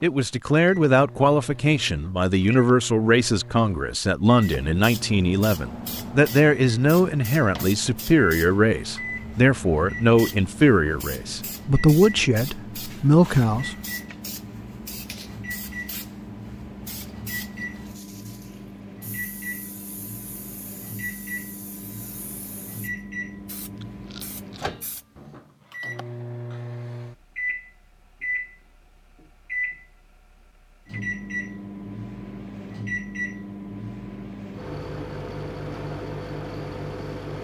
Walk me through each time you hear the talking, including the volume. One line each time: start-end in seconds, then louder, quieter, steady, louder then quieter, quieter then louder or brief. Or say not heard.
0.0-13.8 steady.